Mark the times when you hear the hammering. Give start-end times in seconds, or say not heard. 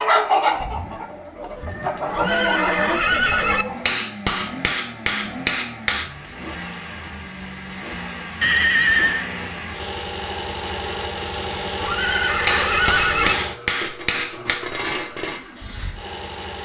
3.9-6.1, 12.4-14.7.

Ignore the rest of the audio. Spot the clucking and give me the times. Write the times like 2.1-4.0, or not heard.
0.0-3.9.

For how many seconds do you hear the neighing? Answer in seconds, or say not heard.
4 s.